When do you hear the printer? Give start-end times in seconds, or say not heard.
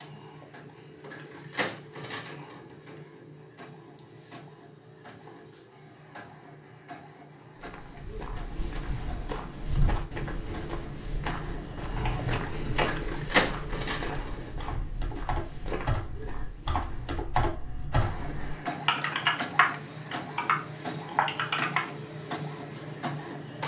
0.0-14.8, 17.9-23.6.